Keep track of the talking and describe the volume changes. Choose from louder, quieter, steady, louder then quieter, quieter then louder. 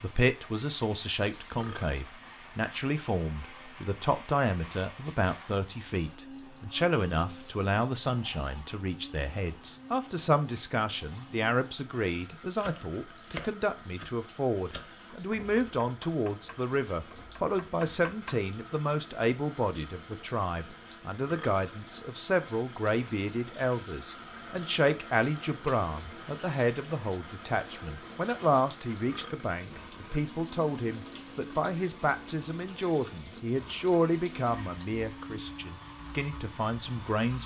steady.